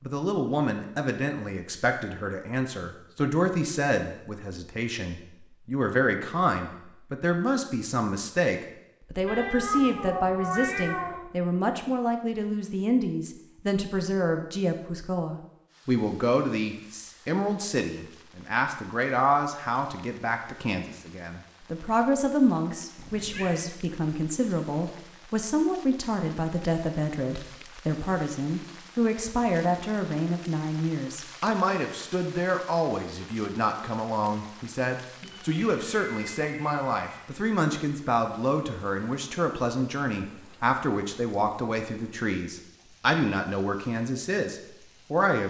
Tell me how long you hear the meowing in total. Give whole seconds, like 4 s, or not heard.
5 s.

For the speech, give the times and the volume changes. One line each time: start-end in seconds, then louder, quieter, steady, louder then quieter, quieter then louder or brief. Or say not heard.
0.0-45.4 steady.